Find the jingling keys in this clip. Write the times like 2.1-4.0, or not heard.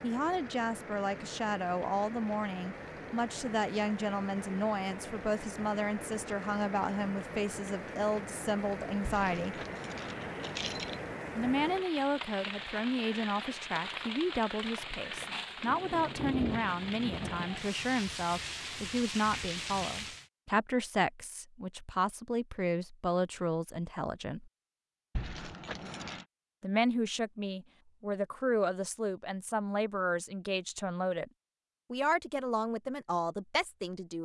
9.1-11.0, 25.1-26.2.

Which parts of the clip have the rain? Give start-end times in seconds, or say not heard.
0.0-20.3.